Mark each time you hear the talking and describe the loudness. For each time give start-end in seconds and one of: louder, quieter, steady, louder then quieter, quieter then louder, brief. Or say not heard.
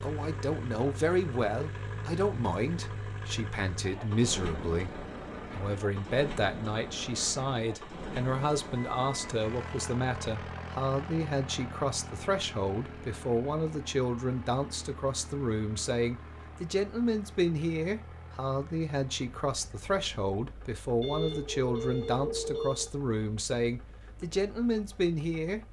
0.0-25.6 steady.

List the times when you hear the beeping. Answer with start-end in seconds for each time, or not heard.
8.2-9.8, 21.0-22.9.